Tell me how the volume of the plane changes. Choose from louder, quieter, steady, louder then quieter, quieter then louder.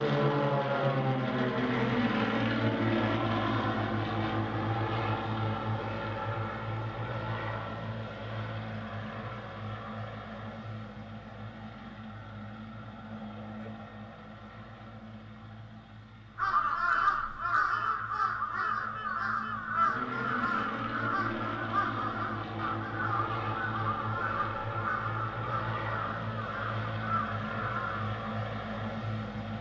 quieter then louder.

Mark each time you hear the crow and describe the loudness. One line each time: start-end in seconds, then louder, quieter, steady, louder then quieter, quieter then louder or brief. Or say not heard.
16.4-28.1 quieter.